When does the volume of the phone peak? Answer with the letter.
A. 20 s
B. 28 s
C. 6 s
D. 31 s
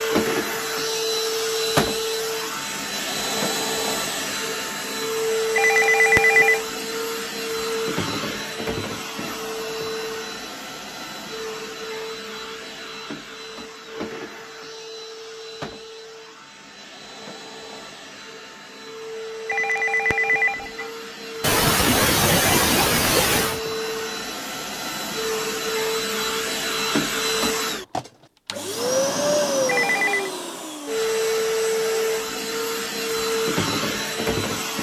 C.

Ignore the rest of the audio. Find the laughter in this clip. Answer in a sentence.
The laughter can be heard from 21.4 to 23.6 s.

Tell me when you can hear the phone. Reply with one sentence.
You can hear the phone from 5.5 to 6.6 s, from 19.4 to 20.9 s and from 29.6 to 30.3 s.